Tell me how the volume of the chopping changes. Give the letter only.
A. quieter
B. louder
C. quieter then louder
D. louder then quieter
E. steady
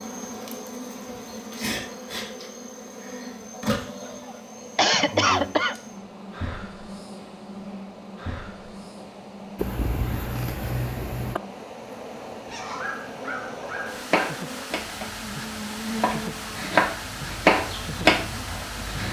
B.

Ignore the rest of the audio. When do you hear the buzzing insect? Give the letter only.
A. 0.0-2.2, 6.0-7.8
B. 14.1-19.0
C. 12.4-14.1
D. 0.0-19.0
D.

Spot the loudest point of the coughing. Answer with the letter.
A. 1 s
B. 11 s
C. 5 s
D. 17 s
C.